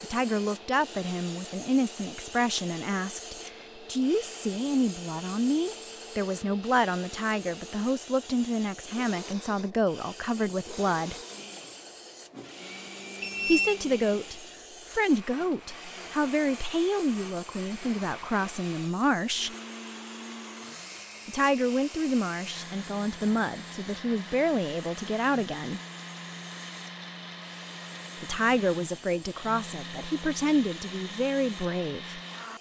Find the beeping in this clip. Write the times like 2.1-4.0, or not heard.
13.2-13.8.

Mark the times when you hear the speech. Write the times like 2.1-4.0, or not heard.
0.0-11.2, 13.4-19.6, 21.2-25.8, 28.2-32.5.